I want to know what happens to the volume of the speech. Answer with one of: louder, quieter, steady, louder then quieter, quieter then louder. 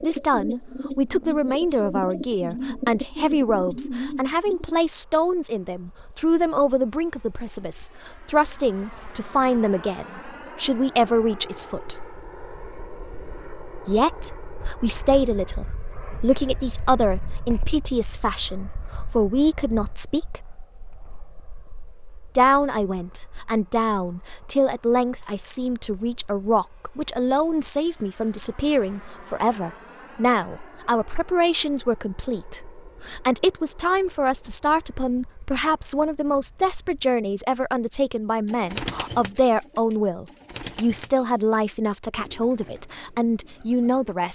steady.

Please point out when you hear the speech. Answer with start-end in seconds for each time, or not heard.
0.0-11.9, 13.8-20.4, 22.4-44.2.